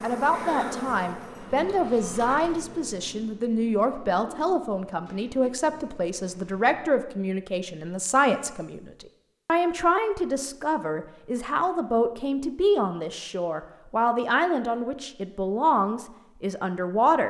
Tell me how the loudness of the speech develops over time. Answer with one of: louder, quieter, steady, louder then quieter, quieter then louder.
steady.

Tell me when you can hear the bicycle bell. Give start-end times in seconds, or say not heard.
not heard.